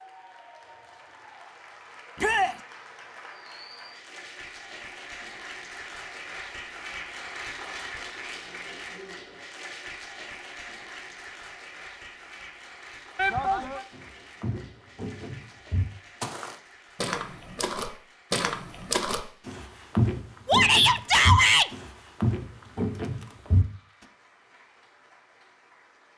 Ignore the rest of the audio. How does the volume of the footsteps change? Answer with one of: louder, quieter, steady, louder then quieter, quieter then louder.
louder.